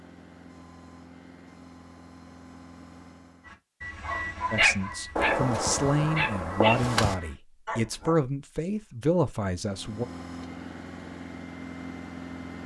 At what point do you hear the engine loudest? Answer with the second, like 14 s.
12 s.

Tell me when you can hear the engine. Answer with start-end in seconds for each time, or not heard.
0.0-3.6, 9.6-12.6.